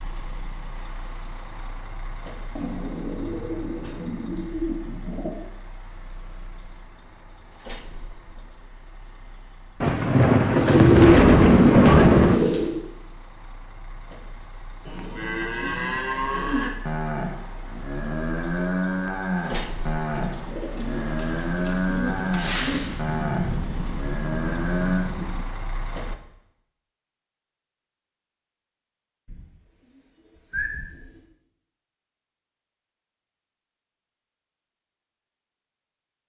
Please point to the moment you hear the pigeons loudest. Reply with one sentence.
The volume of the pigeons peaks at 11 seconds.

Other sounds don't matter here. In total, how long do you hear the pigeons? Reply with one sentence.
You can hear the pigeons for 10 seconds altogether.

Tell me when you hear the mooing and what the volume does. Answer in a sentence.
You can hear the mooing from 14.8 to 25.1 s, at a steady volume.